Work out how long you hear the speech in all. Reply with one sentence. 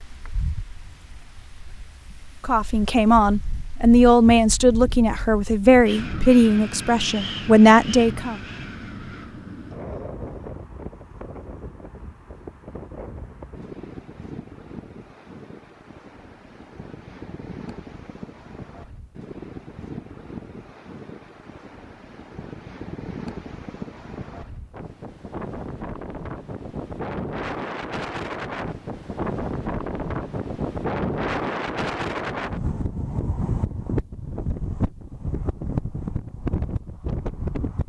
The speech can be heard for 6 seconds in total.